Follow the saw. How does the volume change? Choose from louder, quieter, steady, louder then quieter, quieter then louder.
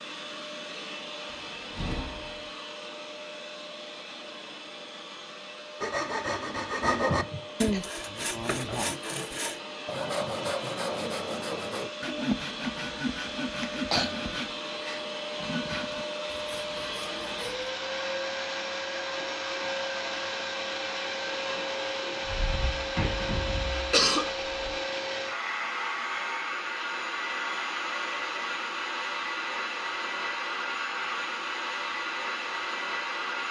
quieter.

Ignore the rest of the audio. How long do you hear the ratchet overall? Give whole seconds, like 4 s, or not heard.
not heard.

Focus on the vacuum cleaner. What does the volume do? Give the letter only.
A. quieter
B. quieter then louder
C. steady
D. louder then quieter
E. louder
E.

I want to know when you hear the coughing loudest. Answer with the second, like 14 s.
24 s.